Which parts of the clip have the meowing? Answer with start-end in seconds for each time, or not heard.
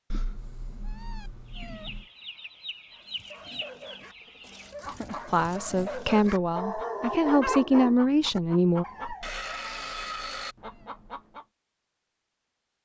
0.1-2.0, 9.2-11.2.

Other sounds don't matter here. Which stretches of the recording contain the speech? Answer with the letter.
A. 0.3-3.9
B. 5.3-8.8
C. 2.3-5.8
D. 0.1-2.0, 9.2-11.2
B.